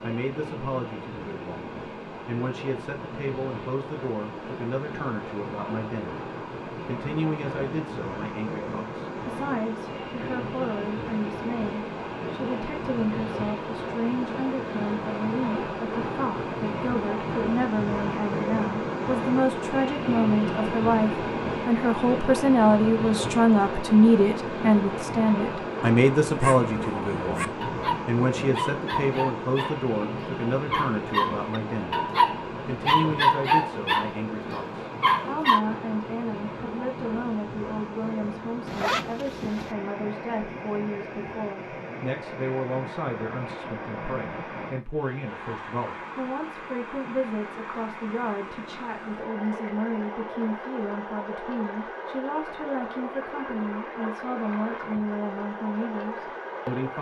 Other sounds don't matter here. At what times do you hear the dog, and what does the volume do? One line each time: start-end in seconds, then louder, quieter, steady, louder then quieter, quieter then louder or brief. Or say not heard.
26.4-35.6 louder.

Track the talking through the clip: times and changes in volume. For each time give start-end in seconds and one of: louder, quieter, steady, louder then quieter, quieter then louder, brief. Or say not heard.
0.0-56.9 louder then quieter.